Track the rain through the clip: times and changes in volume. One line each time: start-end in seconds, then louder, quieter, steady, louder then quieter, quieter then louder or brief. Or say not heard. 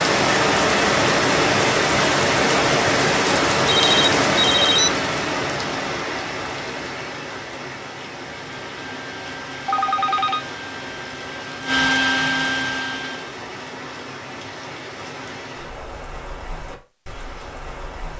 0.0-18.1 quieter.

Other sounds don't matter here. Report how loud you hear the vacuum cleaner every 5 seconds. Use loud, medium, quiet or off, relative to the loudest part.
off, quiet, loud, off.